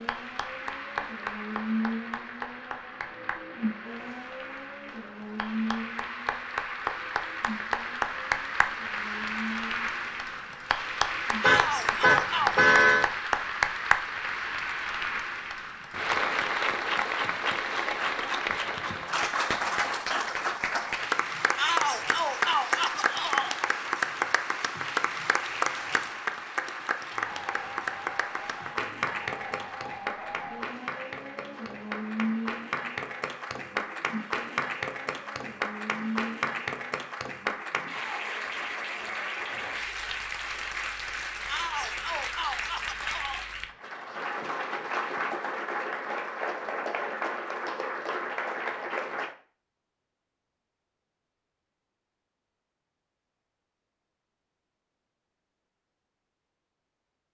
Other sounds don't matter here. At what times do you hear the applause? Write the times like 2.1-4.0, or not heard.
0.0-49.4.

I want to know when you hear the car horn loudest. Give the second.
13 s.